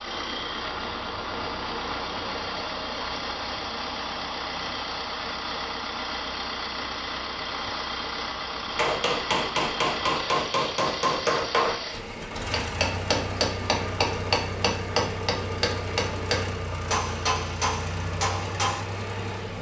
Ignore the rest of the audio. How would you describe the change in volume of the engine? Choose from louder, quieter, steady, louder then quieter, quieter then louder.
steady.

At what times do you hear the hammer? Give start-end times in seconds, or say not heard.
8.7-18.9.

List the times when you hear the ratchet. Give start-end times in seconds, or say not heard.
not heard.